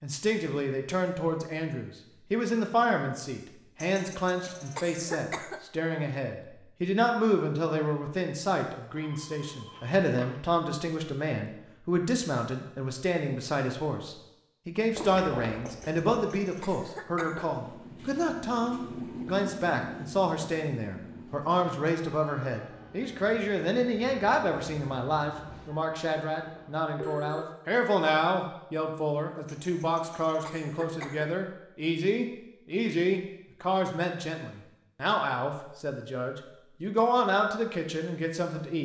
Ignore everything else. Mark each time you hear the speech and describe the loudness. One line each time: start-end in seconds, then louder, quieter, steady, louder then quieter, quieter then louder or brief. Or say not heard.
0.0-38.8 steady.